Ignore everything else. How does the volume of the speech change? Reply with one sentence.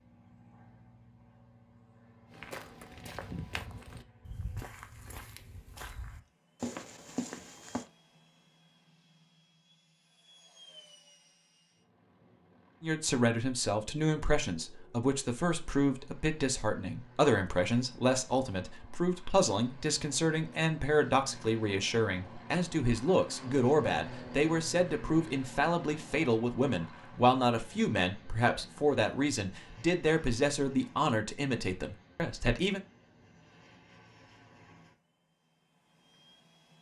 The volume of the speech stays about the same.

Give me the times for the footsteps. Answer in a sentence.
You can hear the footsteps from 2.3 to 7.8 s.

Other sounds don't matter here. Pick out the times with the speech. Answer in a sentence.
The speech can be heard from 12.8 to 32.8 s.